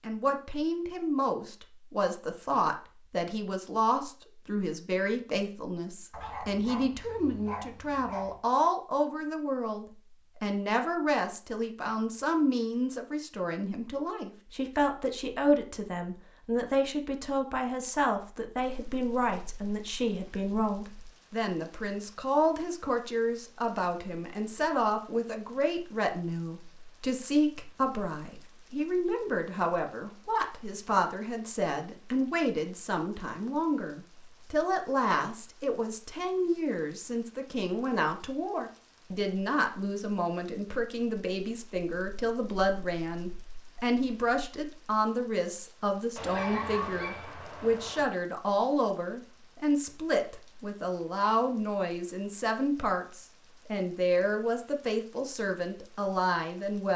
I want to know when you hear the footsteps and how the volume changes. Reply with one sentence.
The footsteps can't be heard in this clip.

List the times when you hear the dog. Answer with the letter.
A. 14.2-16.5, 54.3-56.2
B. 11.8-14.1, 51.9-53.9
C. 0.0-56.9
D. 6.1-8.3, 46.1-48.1
D.